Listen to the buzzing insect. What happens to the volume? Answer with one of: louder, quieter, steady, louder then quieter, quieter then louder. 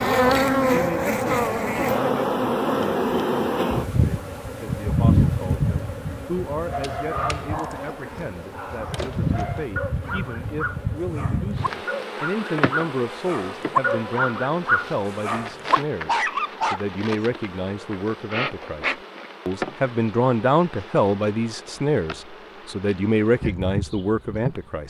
quieter.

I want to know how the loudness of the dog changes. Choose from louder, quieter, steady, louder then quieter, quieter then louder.
louder.